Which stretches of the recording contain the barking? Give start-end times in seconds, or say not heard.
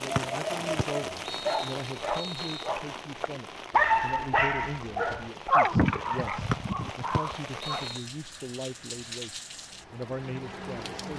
0.2-7.8.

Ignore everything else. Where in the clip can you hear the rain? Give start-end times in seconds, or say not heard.
0.0-11.1.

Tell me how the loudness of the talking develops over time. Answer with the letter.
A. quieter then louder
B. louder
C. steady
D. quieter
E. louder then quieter
C.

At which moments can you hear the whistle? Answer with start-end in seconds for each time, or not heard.
0.1-2.7, 6.5-8.1.